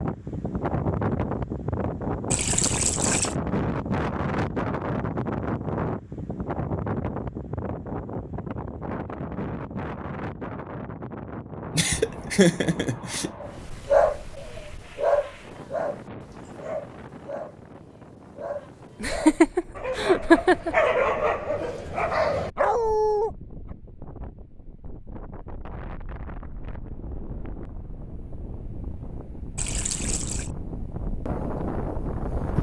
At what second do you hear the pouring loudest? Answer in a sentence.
The loudest moment of the pouring is at 3 seconds.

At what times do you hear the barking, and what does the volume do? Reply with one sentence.
The barking can be heard from 13.4 to 23.3 s, getting quieter then louder.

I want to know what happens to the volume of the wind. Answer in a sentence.
The volume of the wind goes down, then up.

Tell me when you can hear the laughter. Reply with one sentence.
You can hear the laughter from 11.8 to 13.3 s and from 19.0 to 20.8 s.